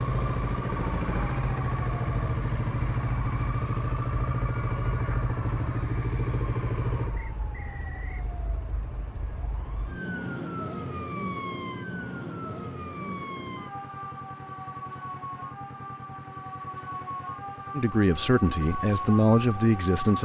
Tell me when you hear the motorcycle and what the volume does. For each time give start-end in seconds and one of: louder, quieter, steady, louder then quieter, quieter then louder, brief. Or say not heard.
0.0-20.2 quieter.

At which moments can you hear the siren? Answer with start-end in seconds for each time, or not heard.
0.0-20.2.